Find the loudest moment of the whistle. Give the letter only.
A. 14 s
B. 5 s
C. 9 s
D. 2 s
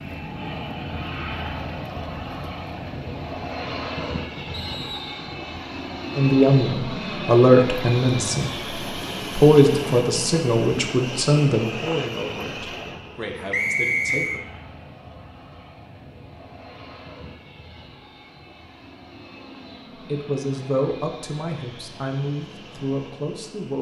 A.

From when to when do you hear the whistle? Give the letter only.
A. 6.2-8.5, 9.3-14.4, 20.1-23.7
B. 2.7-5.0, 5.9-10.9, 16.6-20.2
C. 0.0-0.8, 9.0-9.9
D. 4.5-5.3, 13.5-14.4
D.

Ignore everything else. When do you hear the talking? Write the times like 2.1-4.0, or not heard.
6.2-8.5, 9.3-14.4, 20.1-23.7.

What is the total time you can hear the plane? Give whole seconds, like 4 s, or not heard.
24 s.